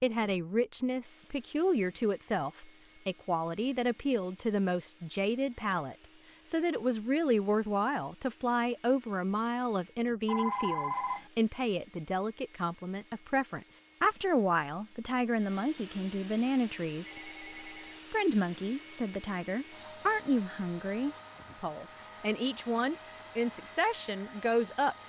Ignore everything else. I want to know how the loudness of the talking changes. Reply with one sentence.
The volume of the talking stays about the same.